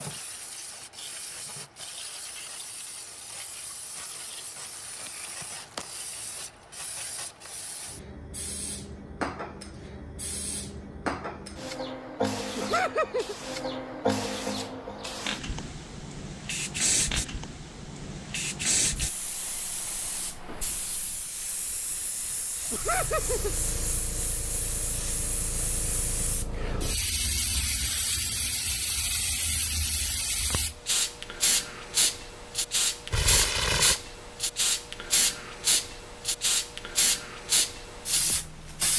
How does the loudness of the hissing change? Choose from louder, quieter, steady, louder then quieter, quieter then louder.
louder.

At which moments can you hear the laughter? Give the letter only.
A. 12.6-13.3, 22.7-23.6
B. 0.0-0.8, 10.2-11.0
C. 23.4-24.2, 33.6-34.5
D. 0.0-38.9
A.